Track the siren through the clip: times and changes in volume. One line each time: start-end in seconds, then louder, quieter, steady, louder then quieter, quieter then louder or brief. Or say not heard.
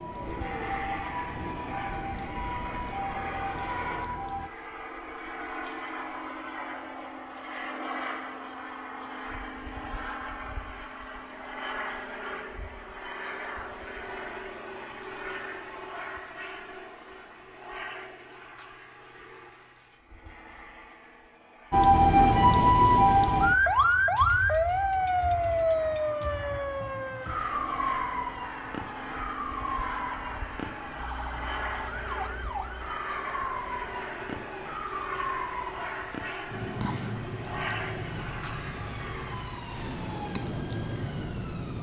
0.0-4.5 steady
21.7-41.7 quieter.